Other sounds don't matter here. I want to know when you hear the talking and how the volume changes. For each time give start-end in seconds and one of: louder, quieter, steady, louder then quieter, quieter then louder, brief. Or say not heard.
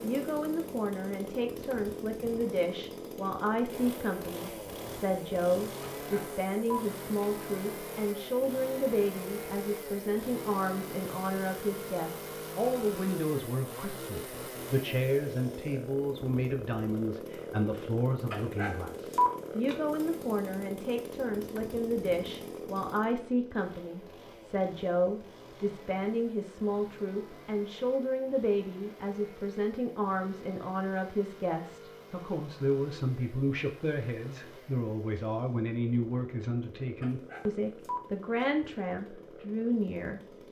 0.0-40.2 steady.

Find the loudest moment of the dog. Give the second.
19 s.